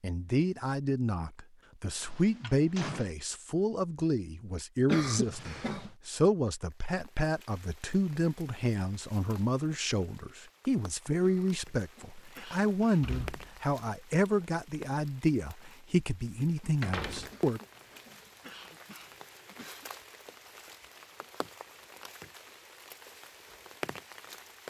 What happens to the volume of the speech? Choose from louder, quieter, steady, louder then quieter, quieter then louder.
steady.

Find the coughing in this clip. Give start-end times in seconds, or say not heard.
4.8-5.9, 11.2-13.1, 17.3-19.9.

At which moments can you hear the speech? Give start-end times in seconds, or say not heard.
0.0-17.6.